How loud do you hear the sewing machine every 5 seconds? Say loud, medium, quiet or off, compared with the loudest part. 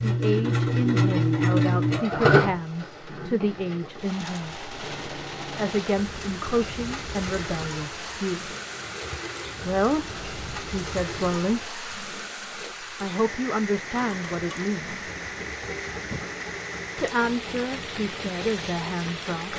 loud, quiet, quiet, quiet.